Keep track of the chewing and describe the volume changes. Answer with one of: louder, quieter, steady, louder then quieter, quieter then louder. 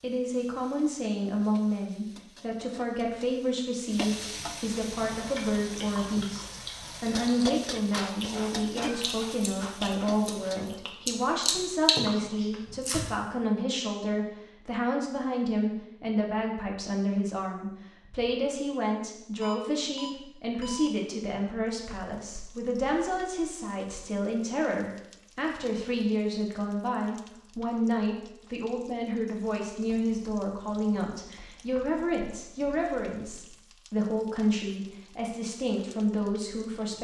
louder.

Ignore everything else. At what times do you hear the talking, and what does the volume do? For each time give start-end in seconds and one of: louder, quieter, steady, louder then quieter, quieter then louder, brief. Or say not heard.
0.0-36.9 steady.